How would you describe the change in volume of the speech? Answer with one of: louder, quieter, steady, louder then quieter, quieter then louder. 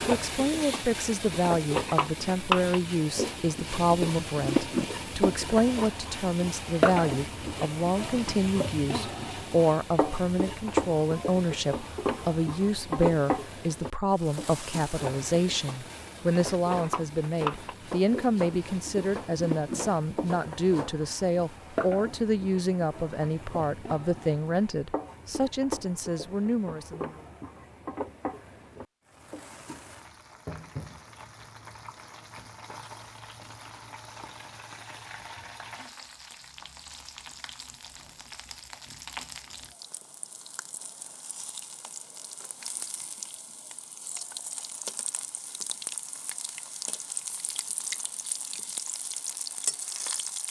steady.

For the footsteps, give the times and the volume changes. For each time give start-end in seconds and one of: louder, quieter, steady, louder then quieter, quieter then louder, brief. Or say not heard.
not heard.